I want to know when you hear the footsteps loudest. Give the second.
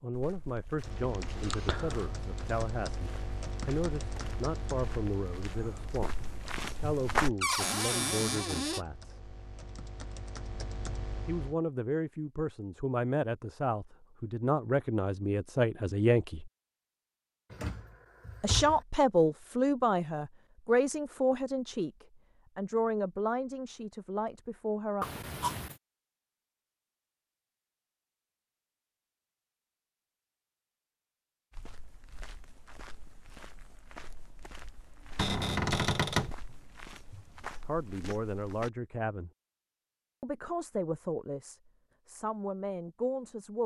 7 s.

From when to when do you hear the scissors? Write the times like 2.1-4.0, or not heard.
25.0-25.8.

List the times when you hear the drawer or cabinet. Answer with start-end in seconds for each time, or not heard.
7.4-8.8, 17.5-18.8, 35.1-36.4.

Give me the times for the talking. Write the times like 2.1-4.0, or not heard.
0.0-9.3, 11.2-16.5, 18.4-25.1, 37.6-39.3, 40.2-43.6.